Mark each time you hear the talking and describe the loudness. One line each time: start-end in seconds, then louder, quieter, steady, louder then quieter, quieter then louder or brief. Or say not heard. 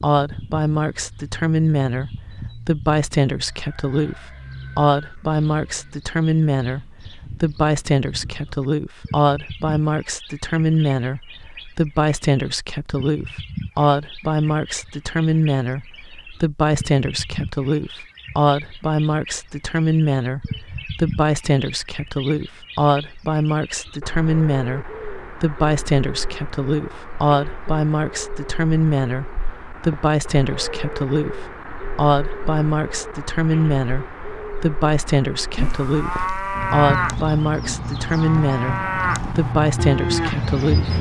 0.0-40.9 steady.